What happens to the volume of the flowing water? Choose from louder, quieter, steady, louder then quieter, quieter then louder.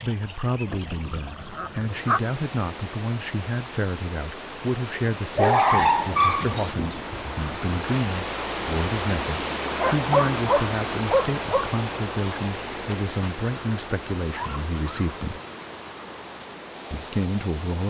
louder then quieter.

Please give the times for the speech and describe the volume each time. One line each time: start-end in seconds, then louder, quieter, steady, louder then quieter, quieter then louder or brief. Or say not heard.
0.0-15.4 steady
16.9-17.8 brief.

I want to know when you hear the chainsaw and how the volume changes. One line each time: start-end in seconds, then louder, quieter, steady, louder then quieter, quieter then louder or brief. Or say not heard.
not heard.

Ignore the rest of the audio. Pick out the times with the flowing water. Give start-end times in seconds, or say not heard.
0.0-17.8.